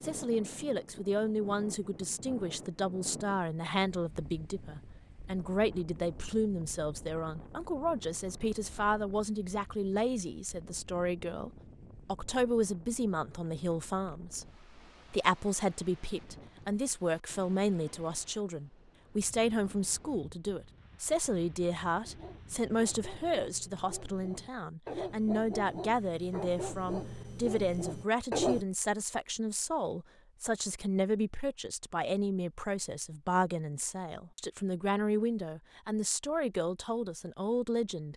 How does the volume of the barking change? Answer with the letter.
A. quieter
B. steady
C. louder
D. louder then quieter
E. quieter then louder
C.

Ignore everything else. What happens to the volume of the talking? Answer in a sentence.
The loudness of the talking stays about the same.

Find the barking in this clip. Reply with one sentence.
You can hear the barking from 22.1 to 28.6 s.